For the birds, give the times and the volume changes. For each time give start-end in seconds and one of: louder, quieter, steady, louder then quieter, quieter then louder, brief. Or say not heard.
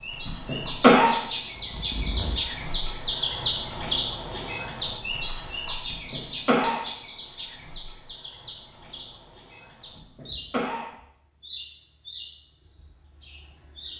0.0-13.9 quieter.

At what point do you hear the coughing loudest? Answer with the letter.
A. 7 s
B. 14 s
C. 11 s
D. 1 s
D.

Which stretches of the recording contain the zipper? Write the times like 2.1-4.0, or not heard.
1.6-2.4.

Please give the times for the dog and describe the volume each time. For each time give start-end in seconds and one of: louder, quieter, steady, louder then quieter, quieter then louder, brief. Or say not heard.
not heard.